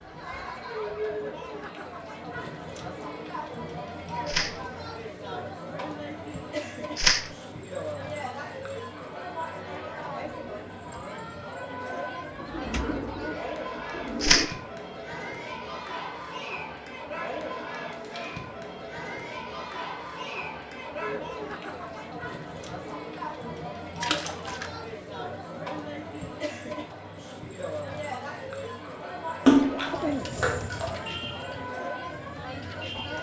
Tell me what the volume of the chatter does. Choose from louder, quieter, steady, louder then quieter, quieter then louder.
steady.